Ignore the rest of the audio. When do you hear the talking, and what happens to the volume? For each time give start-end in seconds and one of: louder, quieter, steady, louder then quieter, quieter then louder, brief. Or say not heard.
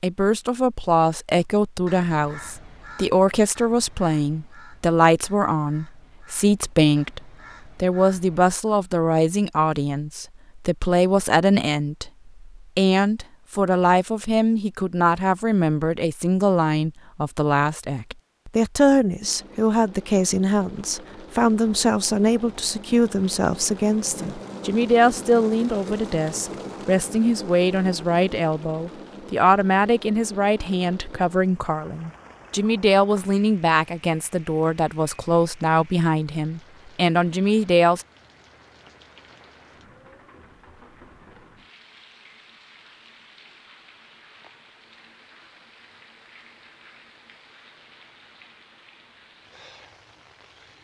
0.0-38.0 steady.